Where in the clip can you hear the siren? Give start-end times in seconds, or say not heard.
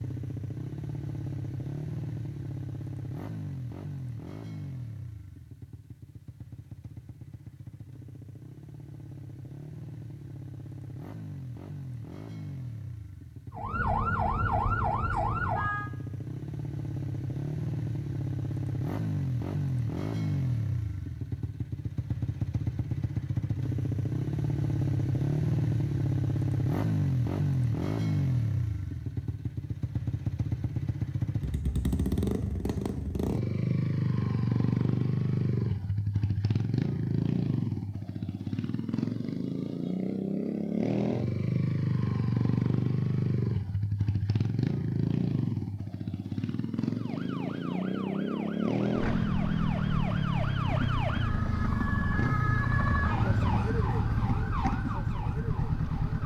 13.5-15.9, 47.0-56.2.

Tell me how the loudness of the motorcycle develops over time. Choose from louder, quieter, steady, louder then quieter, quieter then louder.
louder.